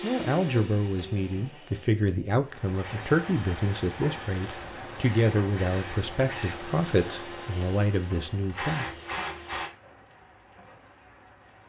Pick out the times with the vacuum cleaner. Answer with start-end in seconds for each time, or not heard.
0.0-9.7.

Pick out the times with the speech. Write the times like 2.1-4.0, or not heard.
0.0-9.2.